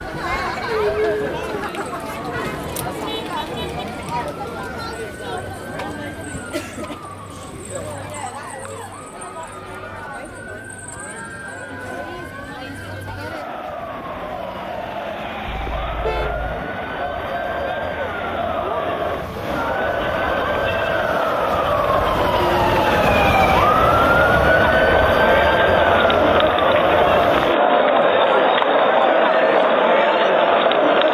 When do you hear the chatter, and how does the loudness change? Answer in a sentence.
You can hear the chatter from 0.0 to 31.1 s, getting quieter then louder.